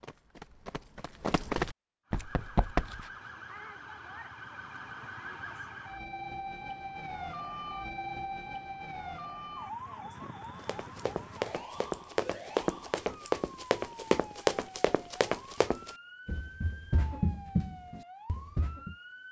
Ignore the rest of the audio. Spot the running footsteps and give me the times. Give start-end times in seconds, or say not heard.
0.0-3.1, 10.4-18.9.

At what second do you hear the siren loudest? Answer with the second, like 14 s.
8 s.